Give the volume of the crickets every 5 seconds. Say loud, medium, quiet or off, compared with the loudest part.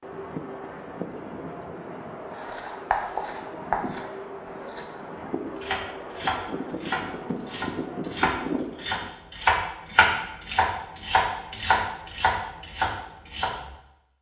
loud, loud, off.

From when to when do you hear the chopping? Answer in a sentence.
You can hear the chopping from 2.3 to 13.8 s.